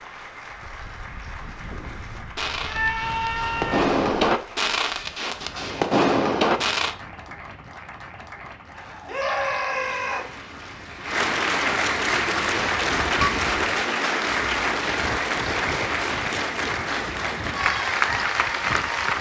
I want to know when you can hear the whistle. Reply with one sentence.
The whistle can't be heard in this clip.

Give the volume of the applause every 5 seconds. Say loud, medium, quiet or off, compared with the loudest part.
quiet, quiet, loud, loud.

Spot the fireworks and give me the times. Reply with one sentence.
You can hear the fireworks from 2.4 to 7.0 s.